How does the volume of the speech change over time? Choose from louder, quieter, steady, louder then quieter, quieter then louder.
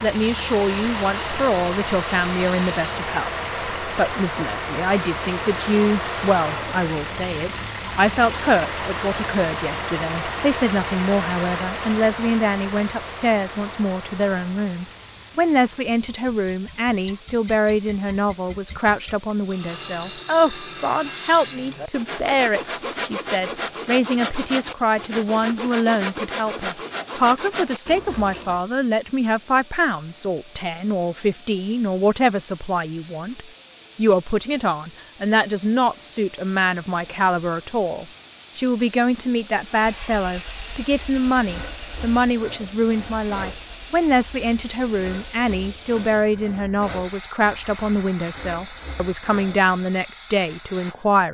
steady.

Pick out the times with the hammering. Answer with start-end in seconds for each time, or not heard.
not heard.